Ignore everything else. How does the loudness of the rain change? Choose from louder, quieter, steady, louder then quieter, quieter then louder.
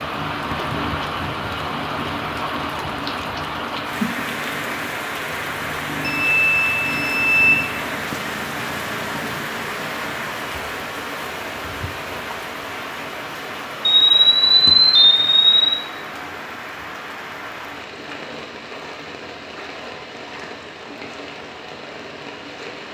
quieter.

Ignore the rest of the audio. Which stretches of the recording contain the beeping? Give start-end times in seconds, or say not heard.
6.0-7.7, 13.9-15.8.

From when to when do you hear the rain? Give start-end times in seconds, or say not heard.
0.0-22.8.